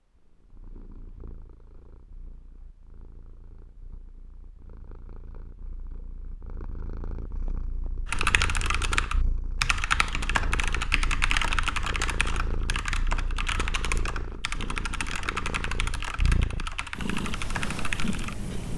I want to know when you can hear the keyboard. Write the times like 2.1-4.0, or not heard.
8.1-18.4.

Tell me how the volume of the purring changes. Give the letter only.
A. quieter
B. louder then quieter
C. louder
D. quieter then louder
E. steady
C.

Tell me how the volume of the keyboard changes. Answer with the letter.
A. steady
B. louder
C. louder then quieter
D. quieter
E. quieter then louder
D.